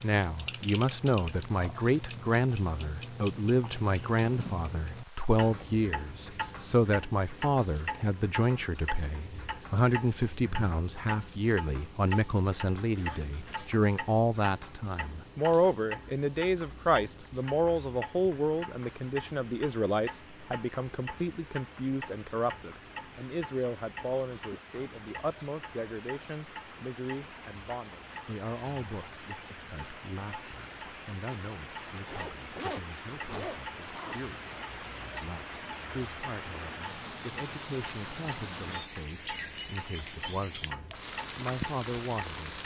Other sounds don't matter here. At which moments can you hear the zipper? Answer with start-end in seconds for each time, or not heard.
12.8-13.8, 31.9-34.4.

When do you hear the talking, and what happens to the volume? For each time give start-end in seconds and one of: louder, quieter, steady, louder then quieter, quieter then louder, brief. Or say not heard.
0.0-42.6 quieter.